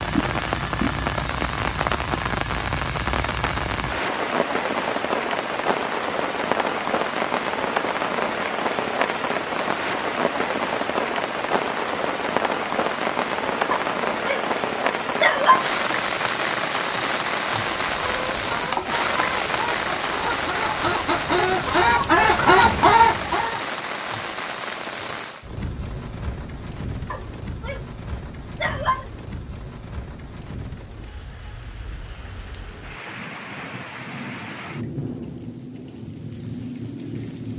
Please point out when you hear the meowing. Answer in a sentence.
The meowing can't be heard in this clip.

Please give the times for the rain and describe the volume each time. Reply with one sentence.
You can hear the rain from 0.0 to 37.5 s, getting quieter.